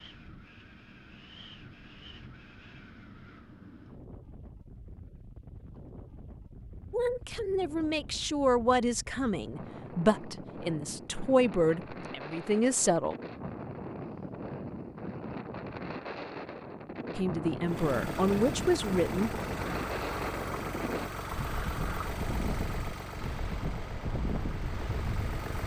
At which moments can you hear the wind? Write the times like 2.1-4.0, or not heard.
0.0-25.6.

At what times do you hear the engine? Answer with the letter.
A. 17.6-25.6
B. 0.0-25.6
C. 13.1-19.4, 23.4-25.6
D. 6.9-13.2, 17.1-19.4
A.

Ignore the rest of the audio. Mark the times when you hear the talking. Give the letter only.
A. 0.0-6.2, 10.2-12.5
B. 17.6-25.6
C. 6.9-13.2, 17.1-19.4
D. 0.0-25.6
C.